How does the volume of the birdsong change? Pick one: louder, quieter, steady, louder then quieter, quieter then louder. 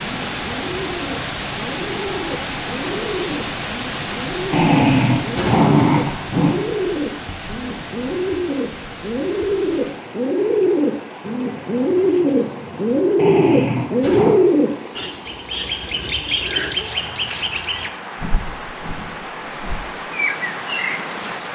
louder then quieter.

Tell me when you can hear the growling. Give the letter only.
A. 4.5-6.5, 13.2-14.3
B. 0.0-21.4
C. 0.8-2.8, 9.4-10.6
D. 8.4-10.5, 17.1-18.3
A.